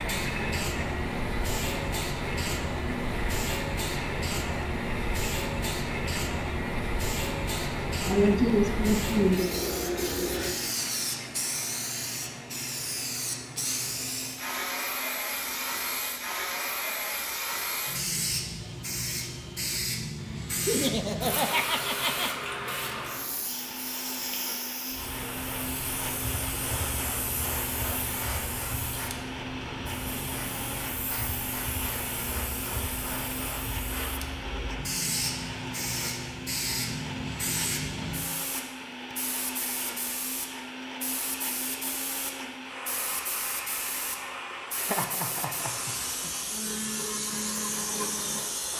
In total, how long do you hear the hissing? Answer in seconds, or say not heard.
49 s.